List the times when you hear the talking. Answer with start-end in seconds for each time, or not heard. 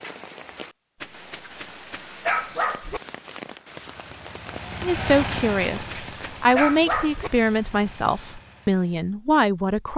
4.8-9.9.